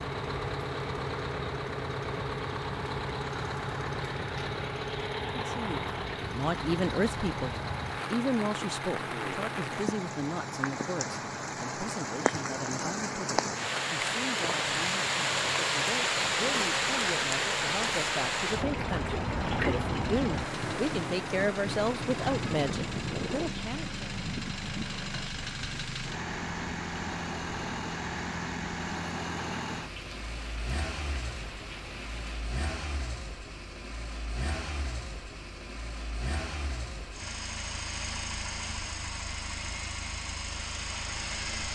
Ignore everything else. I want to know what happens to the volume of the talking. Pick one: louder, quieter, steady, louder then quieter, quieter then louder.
quieter then louder.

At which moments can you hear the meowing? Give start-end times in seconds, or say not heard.
not heard.